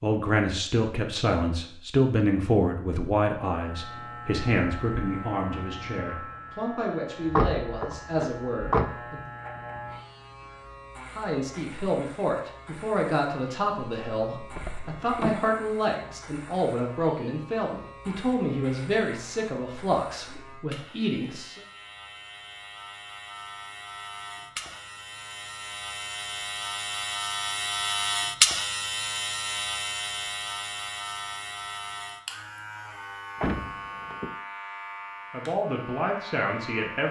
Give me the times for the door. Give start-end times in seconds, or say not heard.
7.2-8.9, 14.5-15.4, 33.4-34.3.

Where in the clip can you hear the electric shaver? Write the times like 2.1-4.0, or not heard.
3.5-37.0.